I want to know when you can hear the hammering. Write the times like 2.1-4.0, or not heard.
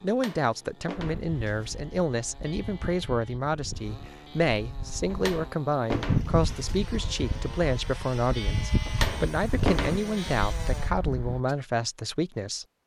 0.1-1.8, 5.1-6.8, 8.8-10.2.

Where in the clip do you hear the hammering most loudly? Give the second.
10 s.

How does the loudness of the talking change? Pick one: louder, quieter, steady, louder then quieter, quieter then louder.
steady.